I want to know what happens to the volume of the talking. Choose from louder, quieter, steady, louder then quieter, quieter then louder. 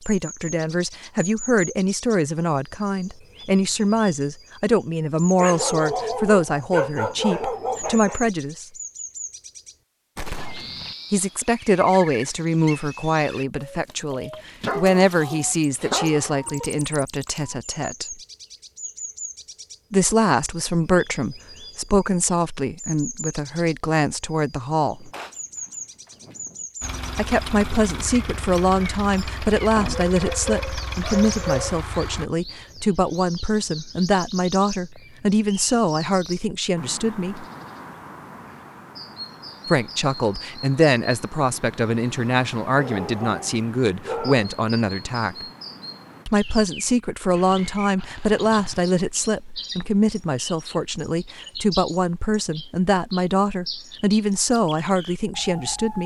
steady.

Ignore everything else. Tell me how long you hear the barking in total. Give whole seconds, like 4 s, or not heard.
9 s.